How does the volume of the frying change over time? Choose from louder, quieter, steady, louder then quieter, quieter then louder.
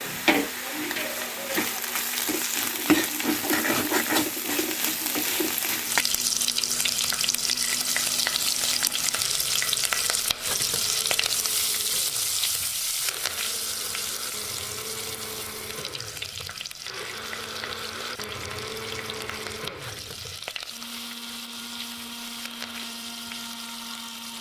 quieter.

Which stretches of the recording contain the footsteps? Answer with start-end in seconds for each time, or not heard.
not heard.